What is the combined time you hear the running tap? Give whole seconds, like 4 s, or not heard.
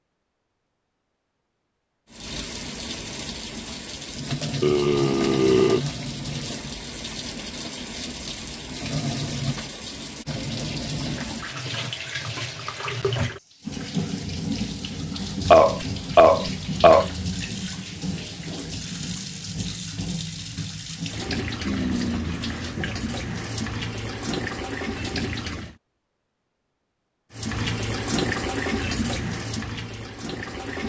27 s.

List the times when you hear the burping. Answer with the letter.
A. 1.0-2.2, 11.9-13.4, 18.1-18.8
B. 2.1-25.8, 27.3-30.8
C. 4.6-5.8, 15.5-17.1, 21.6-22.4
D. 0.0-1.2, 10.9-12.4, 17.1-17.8
C.